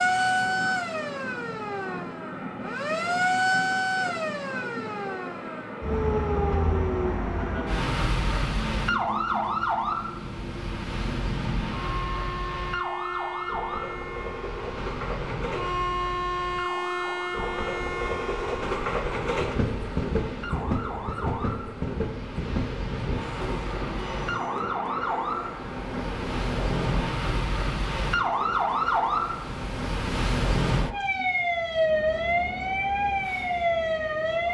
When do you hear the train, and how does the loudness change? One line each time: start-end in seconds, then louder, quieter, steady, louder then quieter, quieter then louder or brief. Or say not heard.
0.0-34.4 louder then quieter.